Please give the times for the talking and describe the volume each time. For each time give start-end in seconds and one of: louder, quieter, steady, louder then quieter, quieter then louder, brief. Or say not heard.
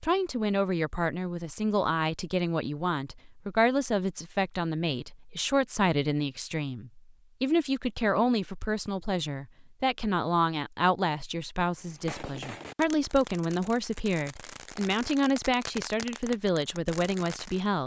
0.0-17.8 steady.